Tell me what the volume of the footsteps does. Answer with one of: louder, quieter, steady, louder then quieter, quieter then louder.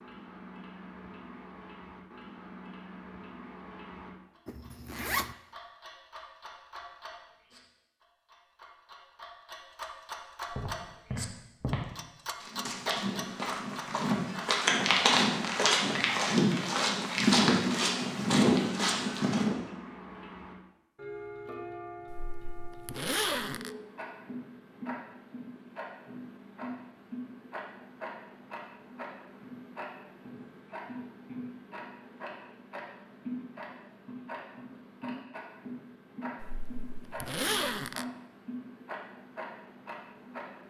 louder.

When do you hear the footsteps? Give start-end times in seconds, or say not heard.
10.5-19.6.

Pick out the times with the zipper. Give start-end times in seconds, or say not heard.
4.5-5.3, 22.1-23.7, 36.4-38.0.